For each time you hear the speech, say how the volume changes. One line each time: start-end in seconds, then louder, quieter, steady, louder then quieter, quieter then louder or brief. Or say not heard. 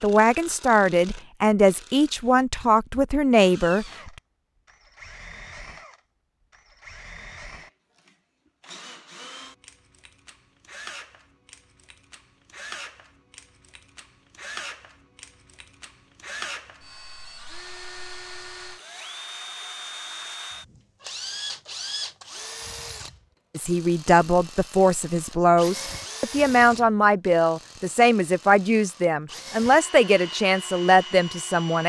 0.0-4.1 steady
23.6-31.8 steady.